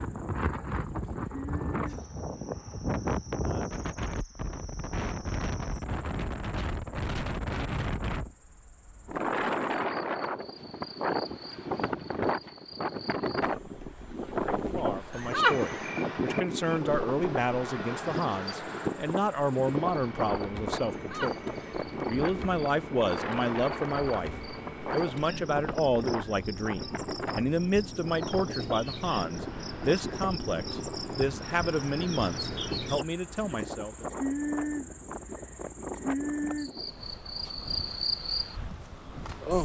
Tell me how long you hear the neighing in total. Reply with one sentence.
The neighing can be heard for 2 seconds in total.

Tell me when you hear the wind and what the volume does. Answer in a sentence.
The wind can be heard from 0.0 to 39.5 s, getting quieter.